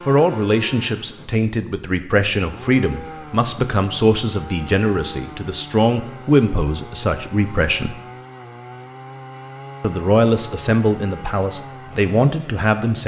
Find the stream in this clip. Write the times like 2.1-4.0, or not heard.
not heard.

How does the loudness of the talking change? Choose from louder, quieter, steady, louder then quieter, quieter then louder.
steady.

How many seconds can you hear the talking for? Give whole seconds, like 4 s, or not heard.
11 s.